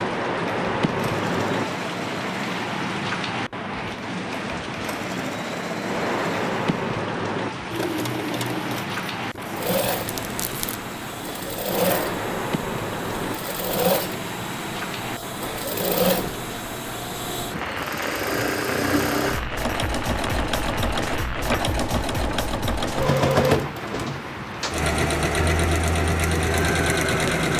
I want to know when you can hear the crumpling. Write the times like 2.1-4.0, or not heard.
10.1-10.8.